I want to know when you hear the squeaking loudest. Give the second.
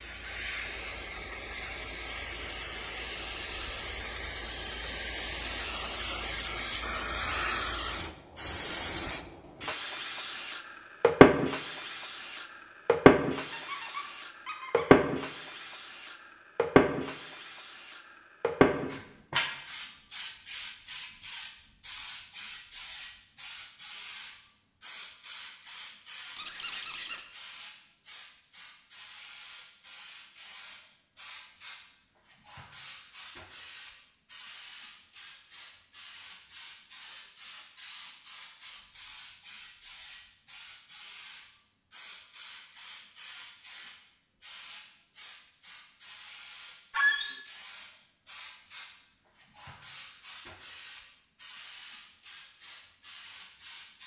47 s.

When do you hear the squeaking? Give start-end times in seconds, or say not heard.
13.5-15.0, 26.4-27.2, 46.9-47.4.